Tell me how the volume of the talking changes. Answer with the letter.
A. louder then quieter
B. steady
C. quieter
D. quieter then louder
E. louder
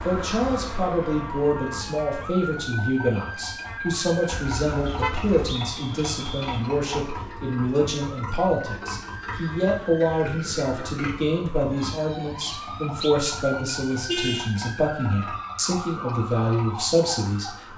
B.